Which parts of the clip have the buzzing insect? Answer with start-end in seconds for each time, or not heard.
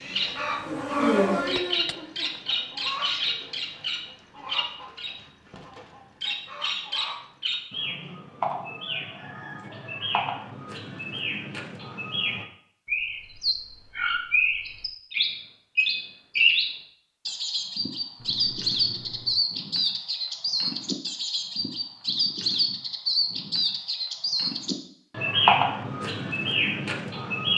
0.0-1.6.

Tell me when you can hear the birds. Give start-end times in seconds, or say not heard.
0.0-27.5.